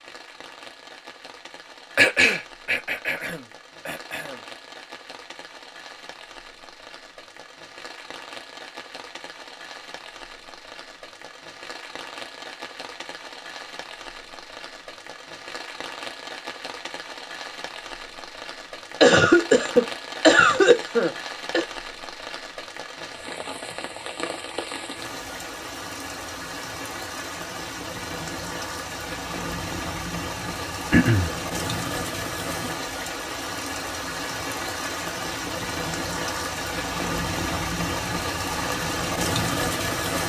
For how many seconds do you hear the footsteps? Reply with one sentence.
The footsteps can't be heard in this clip.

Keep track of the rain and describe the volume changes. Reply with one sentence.
The volume of the rain goes up.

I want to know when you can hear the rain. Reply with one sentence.
You can hear the rain from 0.0 to 40.2 s.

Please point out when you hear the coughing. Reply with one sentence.
You can hear the coughing from 1.9 to 4.3 s, from 19.0 to 21.6 s and from 30.9 to 31.3 s.